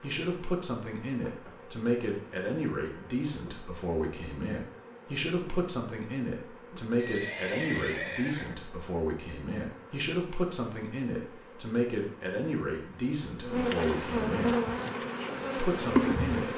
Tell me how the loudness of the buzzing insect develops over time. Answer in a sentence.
The volume of the buzzing insect goes up.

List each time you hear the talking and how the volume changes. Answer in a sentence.
You can hear the talking from 0.0 to 14.6 s, at a steady volume; and briefly from 15.6 to 16.5 s.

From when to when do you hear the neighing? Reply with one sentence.
You can hear the neighing from 7.0 to 8.6 s.